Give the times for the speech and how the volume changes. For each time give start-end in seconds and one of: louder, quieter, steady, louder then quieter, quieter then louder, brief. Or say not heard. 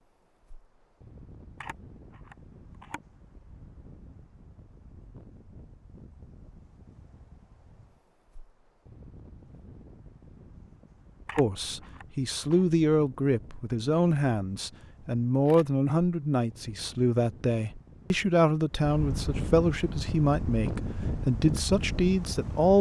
11.3-22.7 steady.